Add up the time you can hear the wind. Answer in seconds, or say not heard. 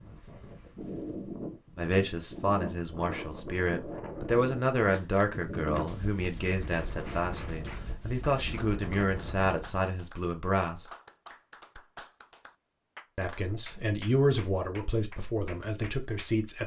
10 s.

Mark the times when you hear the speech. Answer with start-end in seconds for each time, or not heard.
1.8-10.8, 13.2-16.6.